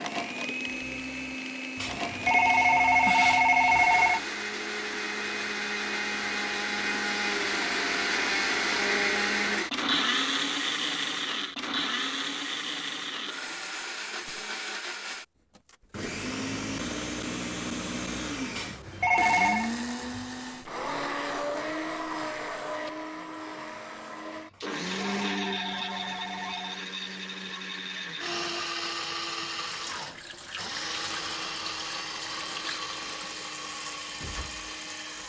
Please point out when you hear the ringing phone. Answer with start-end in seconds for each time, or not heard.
1.8-4.2, 18.5-19.7, 24.5-26.9.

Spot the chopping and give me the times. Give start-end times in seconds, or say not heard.
not heard.